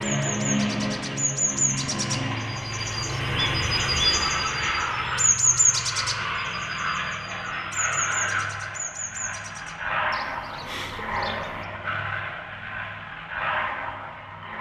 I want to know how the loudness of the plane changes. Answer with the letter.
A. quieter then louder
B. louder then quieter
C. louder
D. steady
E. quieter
D.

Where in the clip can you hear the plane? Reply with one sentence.
You can hear the plane from 0.0 to 14.5 s.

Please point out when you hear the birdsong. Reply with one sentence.
The birdsong can be heard from 0.0 to 11.7 s.